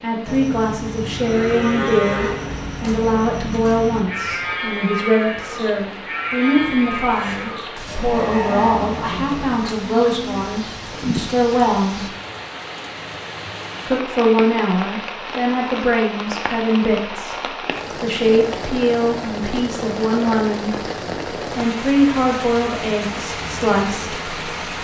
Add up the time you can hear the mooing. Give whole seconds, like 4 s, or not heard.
10 s.